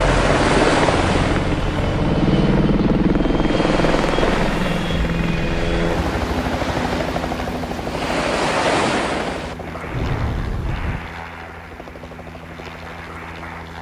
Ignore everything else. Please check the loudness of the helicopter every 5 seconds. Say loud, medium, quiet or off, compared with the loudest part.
loud, medium, quiet.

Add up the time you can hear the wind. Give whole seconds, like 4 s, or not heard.
11 s.